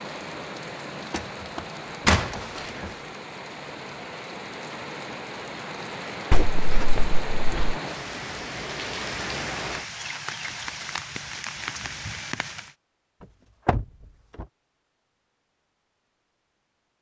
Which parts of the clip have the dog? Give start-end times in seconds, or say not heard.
not heard.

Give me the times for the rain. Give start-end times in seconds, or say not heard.
0.0-12.8.